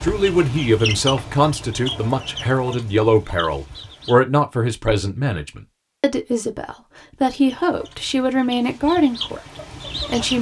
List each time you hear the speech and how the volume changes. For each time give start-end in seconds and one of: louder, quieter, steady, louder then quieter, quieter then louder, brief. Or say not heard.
0.0-10.3 steady.